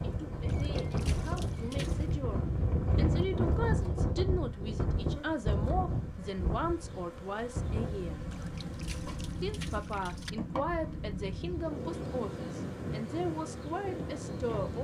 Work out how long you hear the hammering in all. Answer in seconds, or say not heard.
not heard.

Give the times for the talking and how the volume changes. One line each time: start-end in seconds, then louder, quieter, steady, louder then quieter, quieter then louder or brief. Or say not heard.
0.0-8.2 louder
9.4-14.7 steady.